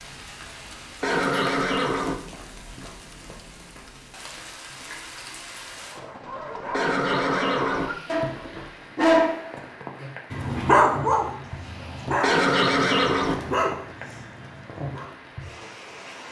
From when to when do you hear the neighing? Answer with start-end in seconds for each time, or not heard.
1.0-2.1, 6.7-7.9, 12.2-13.3.